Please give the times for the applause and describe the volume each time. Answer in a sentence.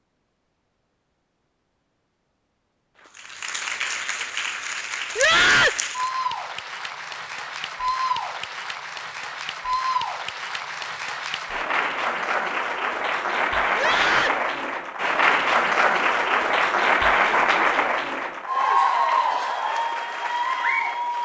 You can hear the applause from 3.0 to 21.2 s, getting louder.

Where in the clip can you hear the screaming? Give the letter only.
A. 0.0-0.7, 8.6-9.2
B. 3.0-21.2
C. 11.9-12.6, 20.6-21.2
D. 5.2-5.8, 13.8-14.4
D.